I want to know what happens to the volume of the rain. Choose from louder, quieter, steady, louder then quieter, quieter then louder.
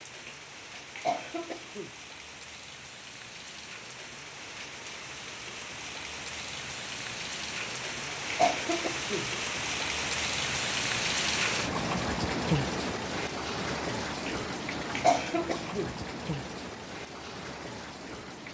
louder then quieter.